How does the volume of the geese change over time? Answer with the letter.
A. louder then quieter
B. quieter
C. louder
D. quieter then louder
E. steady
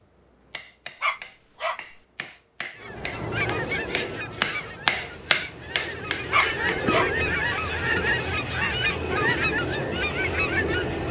D.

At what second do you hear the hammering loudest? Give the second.
5 s.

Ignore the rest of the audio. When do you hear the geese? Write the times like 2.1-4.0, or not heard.
2.8-11.0.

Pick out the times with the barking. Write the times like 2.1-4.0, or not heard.
1.0-1.8, 6.3-7.1.